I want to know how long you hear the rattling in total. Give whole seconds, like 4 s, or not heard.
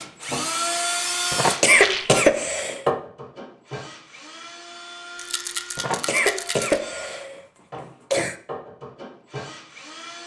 2 s.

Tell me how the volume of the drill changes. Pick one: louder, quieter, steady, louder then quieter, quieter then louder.
quieter.